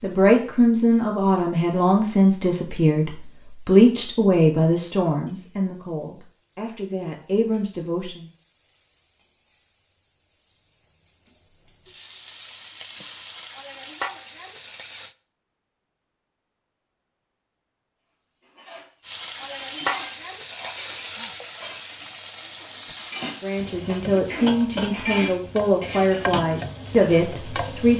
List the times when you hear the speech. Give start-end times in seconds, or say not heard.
0.0-8.2, 23.4-27.9.